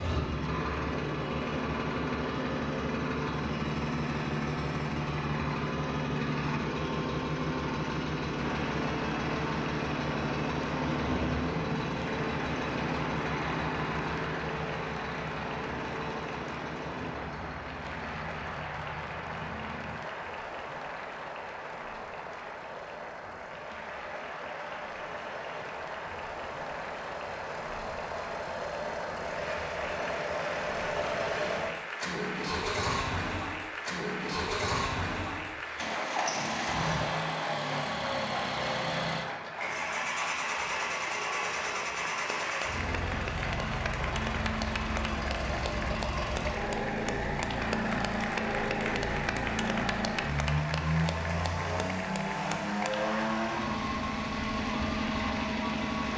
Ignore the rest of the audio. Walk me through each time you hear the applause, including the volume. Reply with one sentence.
The applause can be heard from 8.3 to 56.1 s, at a steady volume.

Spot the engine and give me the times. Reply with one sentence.
The engine can be heard from 0.0 to 56.1 s.